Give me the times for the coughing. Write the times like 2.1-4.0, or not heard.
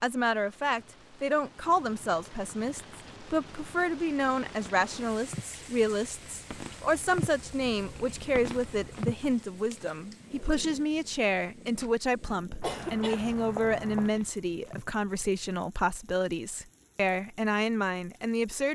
12.6-14.1.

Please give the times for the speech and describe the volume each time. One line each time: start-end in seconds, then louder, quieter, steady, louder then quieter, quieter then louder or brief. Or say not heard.
0.0-18.6 steady.